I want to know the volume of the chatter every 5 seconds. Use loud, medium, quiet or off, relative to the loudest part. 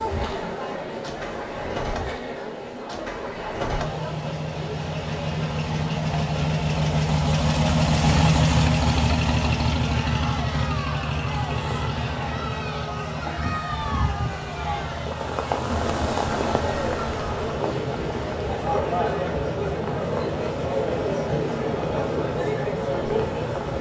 medium, medium, medium, loud, loud.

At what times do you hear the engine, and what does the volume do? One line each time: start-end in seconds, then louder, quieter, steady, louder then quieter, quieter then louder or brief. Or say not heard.
0.0-23.7 louder then quieter.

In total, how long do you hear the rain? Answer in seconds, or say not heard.
12 s.